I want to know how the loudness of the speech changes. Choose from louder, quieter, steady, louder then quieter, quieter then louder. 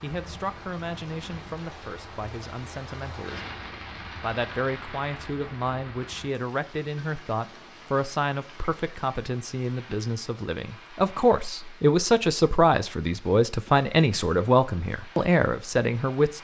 louder.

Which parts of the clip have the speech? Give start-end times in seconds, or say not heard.
0.0-3.5, 4.2-16.3.